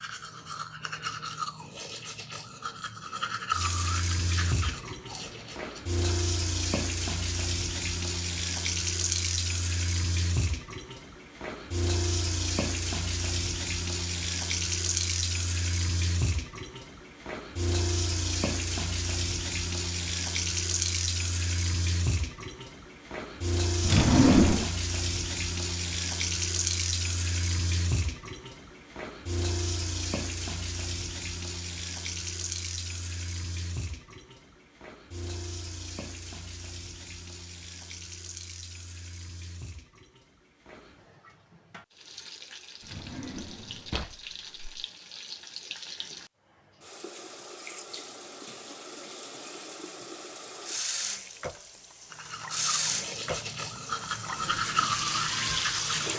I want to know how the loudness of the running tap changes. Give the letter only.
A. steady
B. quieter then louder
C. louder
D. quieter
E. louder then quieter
B.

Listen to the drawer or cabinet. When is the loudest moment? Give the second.
24 s.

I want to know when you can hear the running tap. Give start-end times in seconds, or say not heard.
3.5-56.1.